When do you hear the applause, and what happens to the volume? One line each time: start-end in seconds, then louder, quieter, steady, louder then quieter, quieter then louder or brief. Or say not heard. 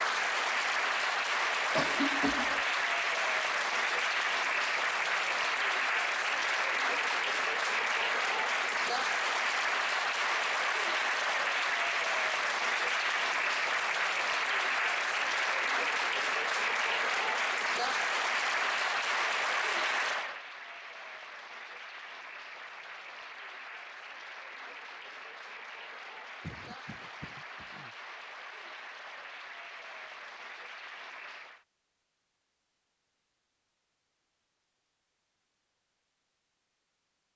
0.0-31.6 quieter.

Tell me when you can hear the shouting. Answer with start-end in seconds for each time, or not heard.
not heard.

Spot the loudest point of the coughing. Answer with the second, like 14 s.
2 s.